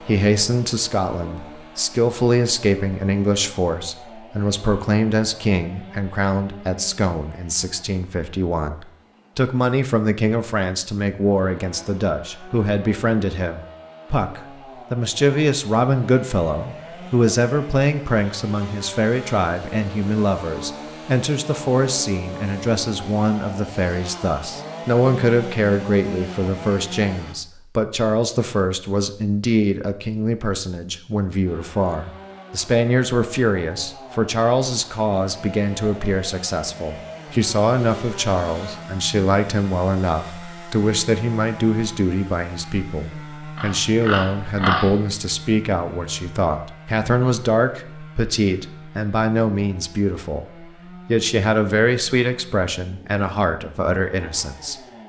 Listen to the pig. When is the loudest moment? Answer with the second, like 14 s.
45 s.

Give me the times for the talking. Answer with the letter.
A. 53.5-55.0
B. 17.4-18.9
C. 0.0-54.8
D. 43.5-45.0
C.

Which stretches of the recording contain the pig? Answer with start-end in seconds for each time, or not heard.
43.5-45.0.